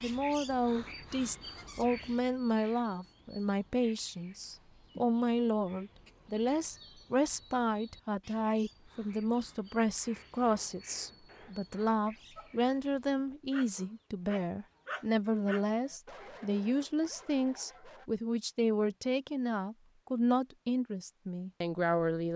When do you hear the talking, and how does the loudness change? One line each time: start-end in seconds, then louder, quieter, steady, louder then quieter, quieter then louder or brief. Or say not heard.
0.0-22.3 steady.